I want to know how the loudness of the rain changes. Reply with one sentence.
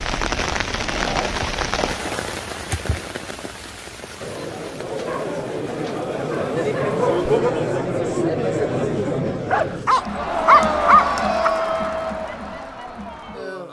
The volume of the rain goes down.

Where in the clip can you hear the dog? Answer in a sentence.
You can hear the dog from 0.8 to 2.2 s, from 5.0 to 7.5 s and from 9.5 to 11.5 s.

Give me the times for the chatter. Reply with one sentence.
The chatter can be heard from 4.2 to 13.6 s.